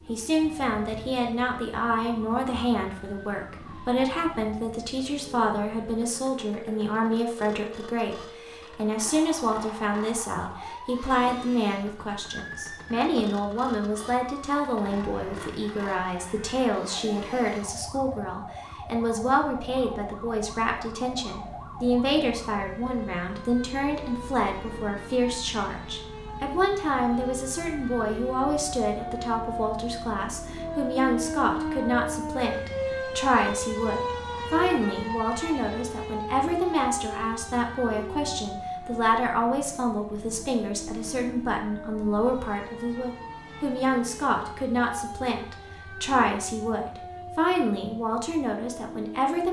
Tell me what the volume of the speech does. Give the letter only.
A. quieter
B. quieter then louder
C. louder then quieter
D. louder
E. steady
E.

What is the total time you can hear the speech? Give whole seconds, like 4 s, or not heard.
49 s.